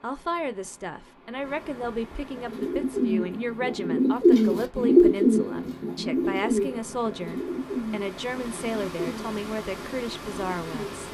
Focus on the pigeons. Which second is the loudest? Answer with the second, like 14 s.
5 s.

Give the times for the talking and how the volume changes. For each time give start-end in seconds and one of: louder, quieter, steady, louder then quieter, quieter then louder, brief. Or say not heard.
0.0-11.0 steady.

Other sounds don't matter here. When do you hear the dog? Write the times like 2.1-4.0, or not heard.
not heard.